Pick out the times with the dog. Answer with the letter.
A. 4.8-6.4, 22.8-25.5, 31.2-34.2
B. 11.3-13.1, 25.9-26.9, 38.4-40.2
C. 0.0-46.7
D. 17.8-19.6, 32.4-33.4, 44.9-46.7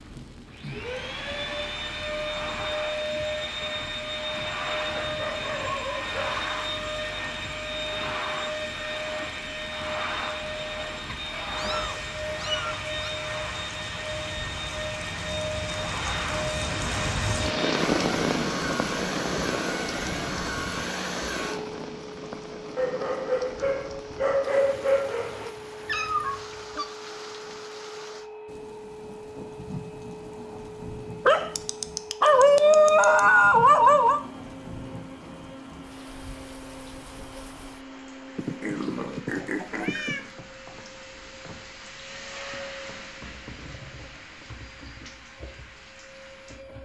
A.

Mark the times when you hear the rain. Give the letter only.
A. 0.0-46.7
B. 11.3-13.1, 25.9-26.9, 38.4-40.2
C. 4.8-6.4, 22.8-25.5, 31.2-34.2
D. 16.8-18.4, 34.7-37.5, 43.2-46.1
A.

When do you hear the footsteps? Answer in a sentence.
You can't hear the footsteps here.